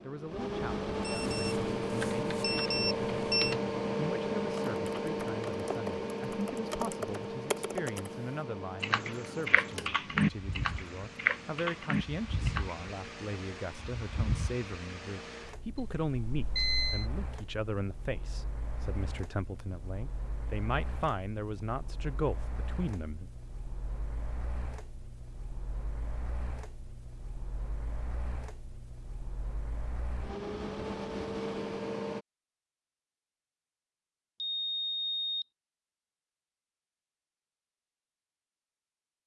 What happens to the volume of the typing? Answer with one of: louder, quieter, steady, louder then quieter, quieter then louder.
louder.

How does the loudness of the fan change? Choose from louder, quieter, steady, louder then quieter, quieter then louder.
quieter then louder.